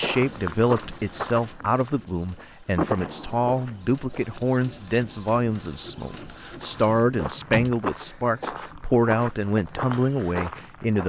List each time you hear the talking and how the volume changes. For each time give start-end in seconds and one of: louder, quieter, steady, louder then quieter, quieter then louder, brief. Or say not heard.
0.0-11.0 steady.